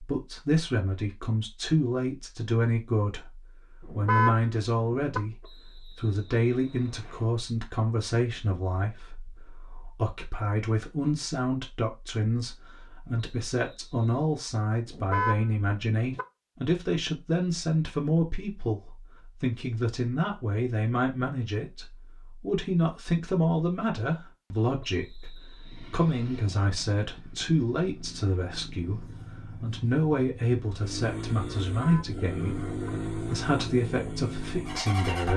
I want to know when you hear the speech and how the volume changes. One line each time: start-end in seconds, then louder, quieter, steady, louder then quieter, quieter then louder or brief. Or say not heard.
0.0-35.3 steady.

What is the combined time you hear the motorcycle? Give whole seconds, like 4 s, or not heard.
10 s.